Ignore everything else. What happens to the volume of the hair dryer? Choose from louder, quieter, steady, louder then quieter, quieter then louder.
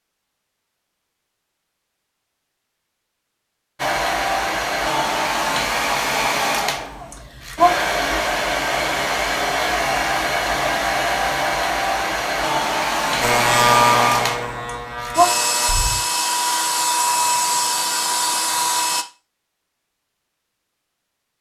steady.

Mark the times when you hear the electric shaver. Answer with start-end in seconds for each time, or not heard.
13.2-16.0.